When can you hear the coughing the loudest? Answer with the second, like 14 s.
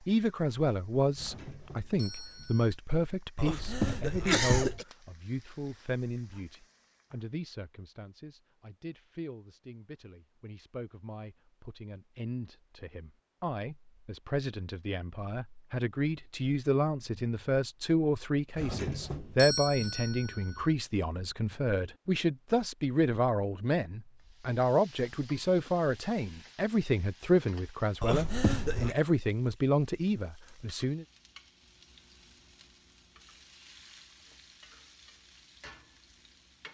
4 s.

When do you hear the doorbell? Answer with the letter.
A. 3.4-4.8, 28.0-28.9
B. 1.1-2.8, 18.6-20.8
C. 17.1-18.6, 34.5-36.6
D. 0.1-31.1
B.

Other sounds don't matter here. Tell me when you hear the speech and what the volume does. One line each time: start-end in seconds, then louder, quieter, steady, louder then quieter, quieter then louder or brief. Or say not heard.
0.1-31.1 quieter then louder.